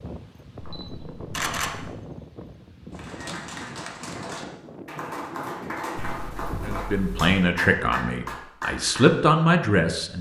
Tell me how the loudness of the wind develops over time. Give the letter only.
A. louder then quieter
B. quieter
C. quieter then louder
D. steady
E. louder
D.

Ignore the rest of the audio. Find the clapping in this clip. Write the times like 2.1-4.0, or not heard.
2.9-9.1.